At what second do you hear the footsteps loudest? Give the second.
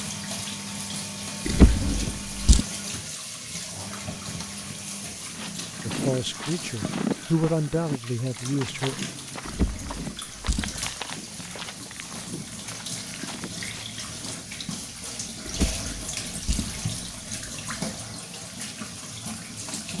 7 s.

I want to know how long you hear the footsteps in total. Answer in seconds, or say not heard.
9 s.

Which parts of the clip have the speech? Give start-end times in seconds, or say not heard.
5.8-9.1.